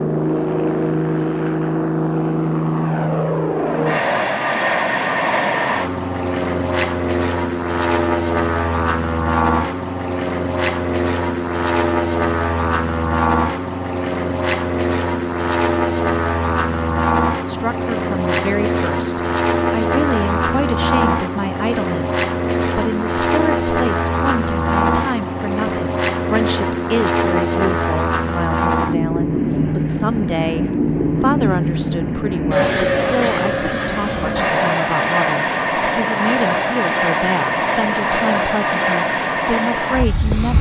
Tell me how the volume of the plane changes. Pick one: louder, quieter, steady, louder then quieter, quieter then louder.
steady.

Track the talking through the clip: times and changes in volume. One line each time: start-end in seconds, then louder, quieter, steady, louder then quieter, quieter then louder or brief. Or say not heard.
17.4-40.5 steady.